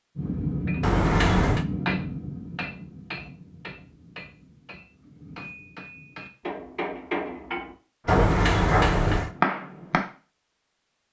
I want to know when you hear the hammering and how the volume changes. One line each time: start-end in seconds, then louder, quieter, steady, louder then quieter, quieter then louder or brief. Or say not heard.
0.1-10.1 quieter then louder.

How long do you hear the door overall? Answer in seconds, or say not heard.
2 s.